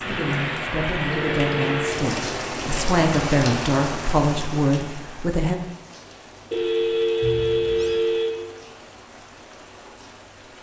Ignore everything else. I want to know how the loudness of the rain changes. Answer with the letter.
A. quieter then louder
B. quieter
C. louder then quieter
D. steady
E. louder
B.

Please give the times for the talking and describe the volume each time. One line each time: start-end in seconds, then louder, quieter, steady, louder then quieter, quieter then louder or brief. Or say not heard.
0.0-5.5 louder.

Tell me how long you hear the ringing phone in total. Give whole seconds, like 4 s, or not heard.
3 s.